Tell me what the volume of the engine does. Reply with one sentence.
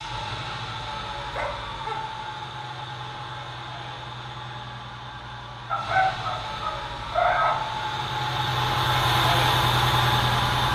The loudness of the engine goes up.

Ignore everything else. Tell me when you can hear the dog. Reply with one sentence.
The dog can be heard from 1.2 to 2.0 s and from 5.7 to 7.7 s.